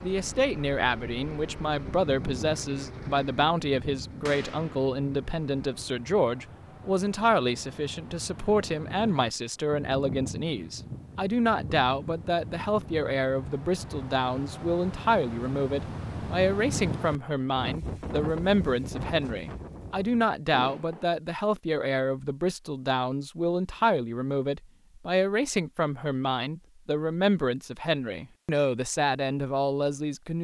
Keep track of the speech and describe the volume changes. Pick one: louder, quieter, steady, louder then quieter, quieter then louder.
steady.